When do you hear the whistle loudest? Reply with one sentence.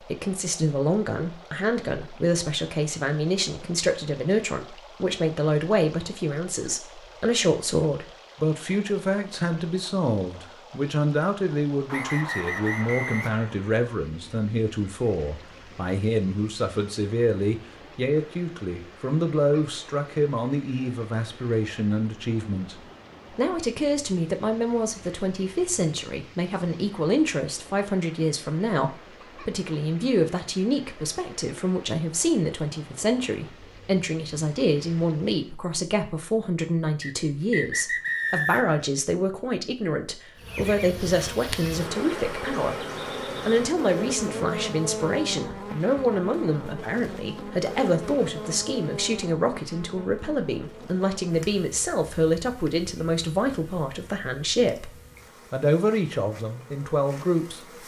The loudest moment of the whistle is at 38 seconds.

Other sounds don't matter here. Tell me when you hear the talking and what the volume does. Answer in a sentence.
You can hear the talking from 0.0 to 42.8 s, at a steady volume; and from 43.5 to 57.6 s, at a steady volume.